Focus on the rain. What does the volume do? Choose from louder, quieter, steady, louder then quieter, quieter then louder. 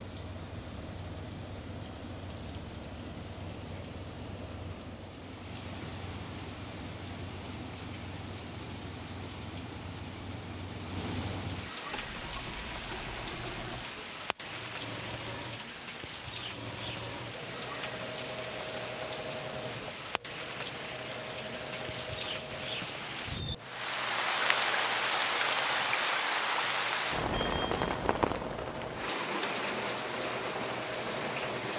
louder.